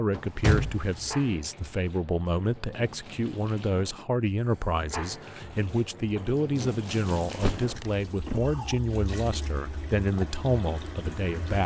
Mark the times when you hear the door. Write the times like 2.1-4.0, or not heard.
0.1-1.4, 7.4-8.6.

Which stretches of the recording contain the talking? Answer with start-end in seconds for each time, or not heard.
0.0-11.6.